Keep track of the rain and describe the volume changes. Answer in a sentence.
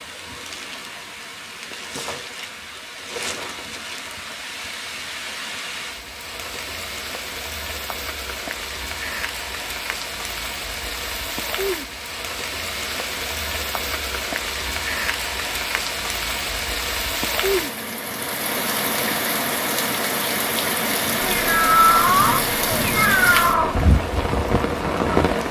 The loudness of the rain goes up.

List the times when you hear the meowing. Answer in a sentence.
You can hear the meowing from 21.2 to 23.9 s.